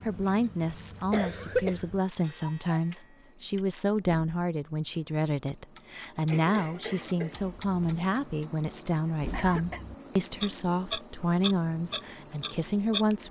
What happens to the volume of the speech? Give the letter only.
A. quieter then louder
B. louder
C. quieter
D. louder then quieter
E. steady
E.